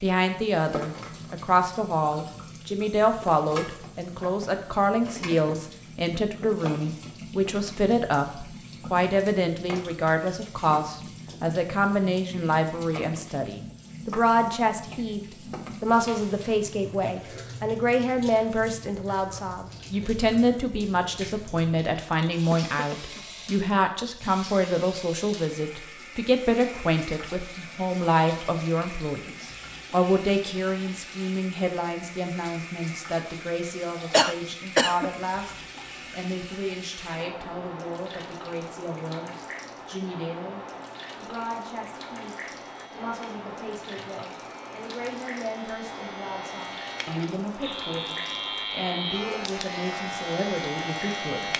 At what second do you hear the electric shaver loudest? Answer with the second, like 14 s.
49 s.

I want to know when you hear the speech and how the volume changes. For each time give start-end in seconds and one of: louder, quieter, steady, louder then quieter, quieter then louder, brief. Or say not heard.
0.0-51.5 quieter.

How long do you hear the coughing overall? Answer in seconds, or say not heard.
2 s.